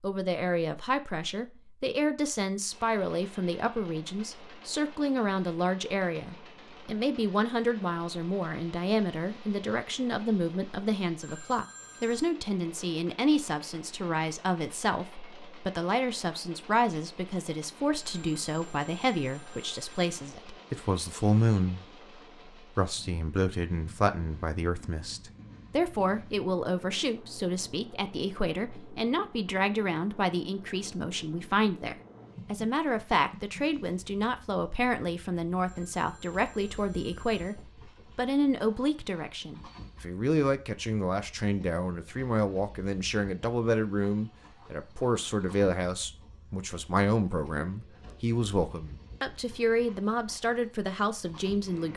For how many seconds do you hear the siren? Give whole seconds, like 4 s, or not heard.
not heard.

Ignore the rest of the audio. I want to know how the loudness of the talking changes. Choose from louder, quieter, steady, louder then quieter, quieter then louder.
steady.